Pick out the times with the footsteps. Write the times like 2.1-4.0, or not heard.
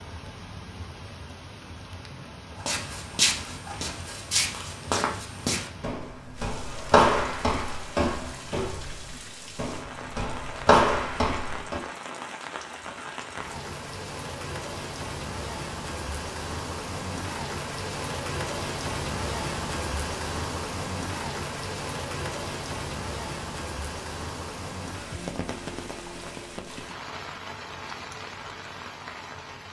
2.6-11.8.